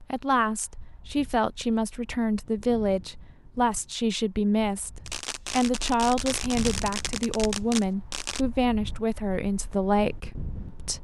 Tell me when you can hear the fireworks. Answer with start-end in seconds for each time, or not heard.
5.0-8.4.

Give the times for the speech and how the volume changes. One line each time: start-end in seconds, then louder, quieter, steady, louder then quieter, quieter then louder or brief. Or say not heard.
0.0-10.9 steady.